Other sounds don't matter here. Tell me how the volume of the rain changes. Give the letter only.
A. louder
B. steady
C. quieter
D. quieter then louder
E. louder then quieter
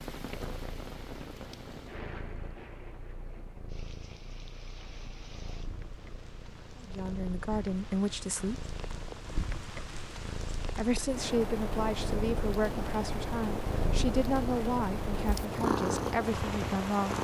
D.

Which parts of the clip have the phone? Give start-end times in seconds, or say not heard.
not heard.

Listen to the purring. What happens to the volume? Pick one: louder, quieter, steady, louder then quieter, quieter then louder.
louder.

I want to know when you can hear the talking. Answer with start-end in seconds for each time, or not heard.
6.8-8.7, 10.8-17.2.